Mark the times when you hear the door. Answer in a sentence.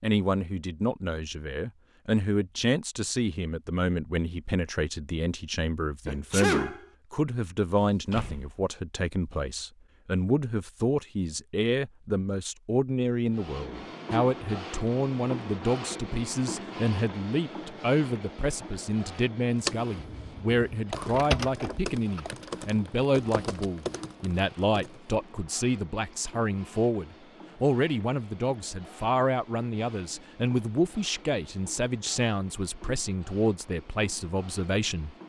You can hear the door from 7.8 to 8.6 s and from 19.9 to 22.2 s.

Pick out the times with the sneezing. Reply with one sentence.
You can hear the sneezing from 6.0 to 6.8 s.